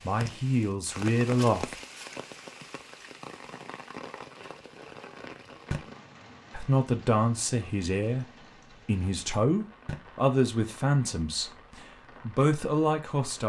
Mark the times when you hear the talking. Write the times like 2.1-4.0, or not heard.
0.0-1.8, 6.5-13.4.